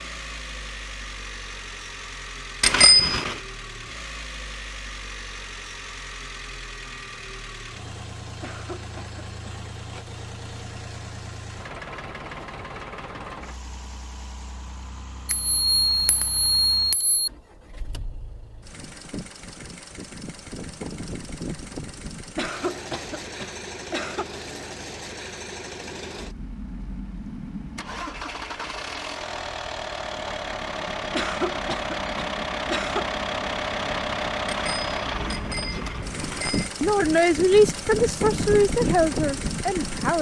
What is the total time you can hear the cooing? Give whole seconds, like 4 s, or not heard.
not heard.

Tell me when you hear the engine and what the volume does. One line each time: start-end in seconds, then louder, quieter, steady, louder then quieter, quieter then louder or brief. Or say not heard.
0.0-40.1 louder.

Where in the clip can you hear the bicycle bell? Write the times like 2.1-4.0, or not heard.
2.6-3.4, 15.2-17.3, 34.5-36.7.